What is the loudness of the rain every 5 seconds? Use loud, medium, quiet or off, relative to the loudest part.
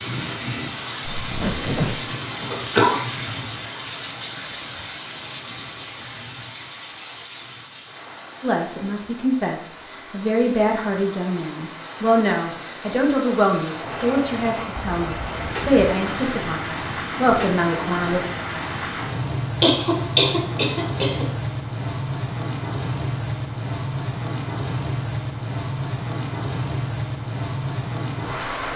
loud, medium, medium, loud, loud, loud.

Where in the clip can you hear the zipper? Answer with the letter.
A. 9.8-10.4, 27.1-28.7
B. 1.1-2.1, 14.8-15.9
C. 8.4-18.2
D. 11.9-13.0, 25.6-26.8
B.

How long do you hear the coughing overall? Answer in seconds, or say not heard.
2 s.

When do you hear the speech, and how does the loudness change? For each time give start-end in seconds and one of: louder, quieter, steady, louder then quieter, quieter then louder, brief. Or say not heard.
8.4-18.2 steady.